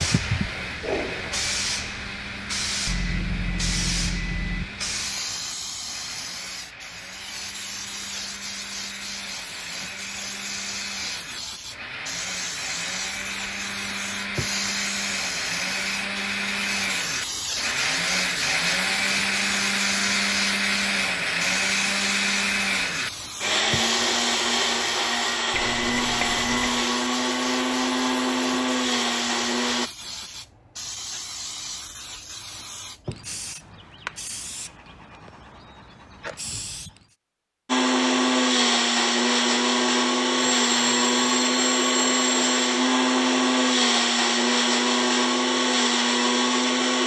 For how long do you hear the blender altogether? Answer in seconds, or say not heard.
39 s.